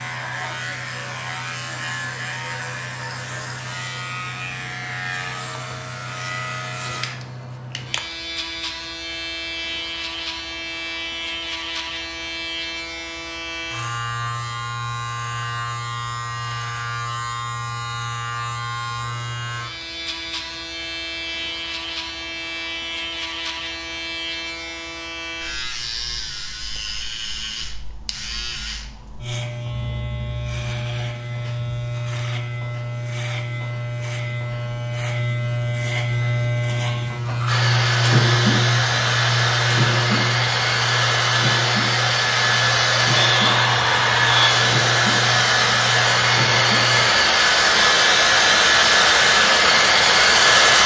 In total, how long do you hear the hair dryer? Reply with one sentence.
You can hear the hair dryer for 13 seconds altogether.